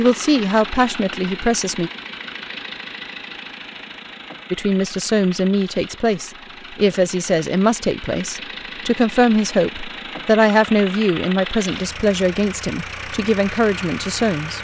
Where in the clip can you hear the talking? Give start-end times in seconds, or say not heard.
0.0-1.9, 4.5-14.5.